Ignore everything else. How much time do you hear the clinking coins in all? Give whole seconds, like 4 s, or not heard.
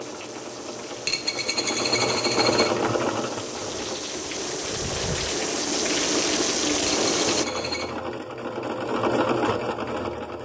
3 s.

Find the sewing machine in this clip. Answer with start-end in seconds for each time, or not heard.
0.0-4.0, 6.9-10.3.